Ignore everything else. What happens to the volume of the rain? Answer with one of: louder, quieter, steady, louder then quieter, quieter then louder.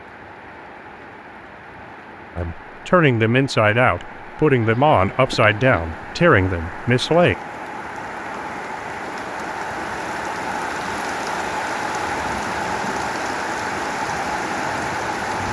louder.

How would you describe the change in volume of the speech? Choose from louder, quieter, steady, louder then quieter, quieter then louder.
steady.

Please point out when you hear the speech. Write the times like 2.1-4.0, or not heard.
2.4-7.3.